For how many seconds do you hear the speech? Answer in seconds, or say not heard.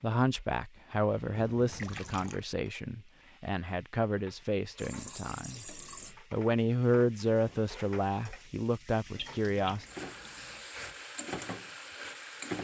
10 s.